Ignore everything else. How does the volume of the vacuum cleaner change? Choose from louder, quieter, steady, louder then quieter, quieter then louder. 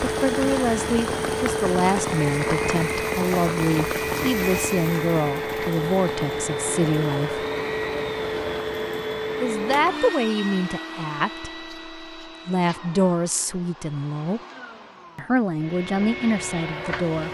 quieter.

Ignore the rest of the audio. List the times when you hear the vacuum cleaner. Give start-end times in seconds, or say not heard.
0.0-17.2.